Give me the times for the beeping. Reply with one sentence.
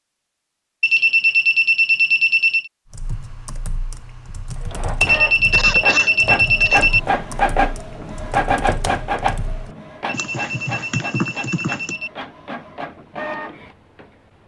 You can hear the beeping from 0.8 to 2.7 s, from 5.0 to 7.0 s and from 10.1 to 12.1 s.